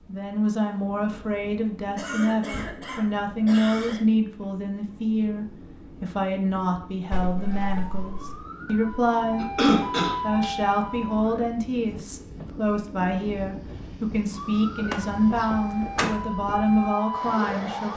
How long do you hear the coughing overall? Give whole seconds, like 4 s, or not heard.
3 s.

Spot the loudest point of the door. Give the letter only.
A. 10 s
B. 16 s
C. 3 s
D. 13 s
B.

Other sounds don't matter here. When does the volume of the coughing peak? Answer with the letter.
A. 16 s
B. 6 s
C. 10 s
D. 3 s
C.